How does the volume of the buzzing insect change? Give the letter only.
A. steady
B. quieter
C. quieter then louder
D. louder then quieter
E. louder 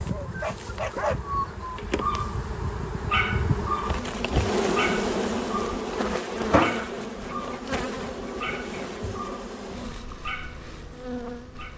D.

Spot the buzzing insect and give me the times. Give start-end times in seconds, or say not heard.
0.0-11.7.